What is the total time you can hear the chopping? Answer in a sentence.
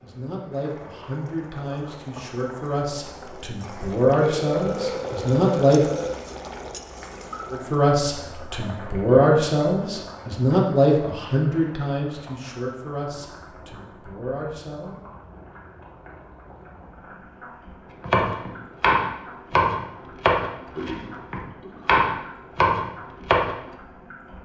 The chopping can be heard for 6 seconds in total.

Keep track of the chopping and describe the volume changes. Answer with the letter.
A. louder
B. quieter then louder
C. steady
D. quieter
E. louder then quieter
B.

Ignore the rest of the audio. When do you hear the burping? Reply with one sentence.
You can hear the burping from 4.2 to 6.2 s, from 9.1 to 10.2 s and from 20.8 to 21.9 s.